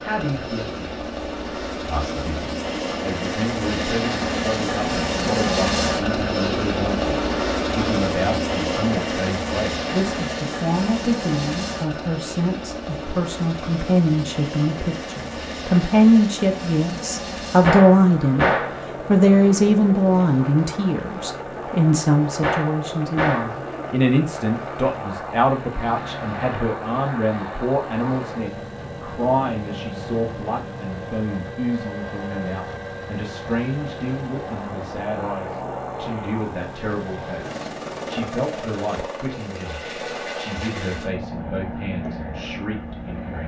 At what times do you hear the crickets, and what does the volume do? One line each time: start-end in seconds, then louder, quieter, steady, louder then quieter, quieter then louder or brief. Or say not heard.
not heard.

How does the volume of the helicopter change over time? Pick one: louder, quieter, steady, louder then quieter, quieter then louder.
quieter.